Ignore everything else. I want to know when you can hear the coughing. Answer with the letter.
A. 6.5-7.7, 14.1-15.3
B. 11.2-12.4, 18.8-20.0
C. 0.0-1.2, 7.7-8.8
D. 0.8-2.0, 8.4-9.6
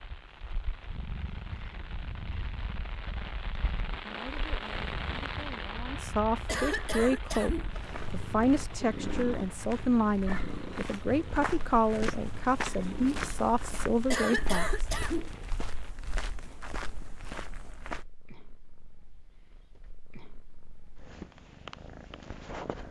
A.